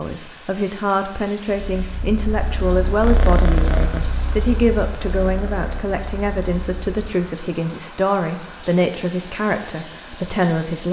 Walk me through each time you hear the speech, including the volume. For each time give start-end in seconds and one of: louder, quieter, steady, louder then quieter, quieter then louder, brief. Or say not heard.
0.0-10.8 steady.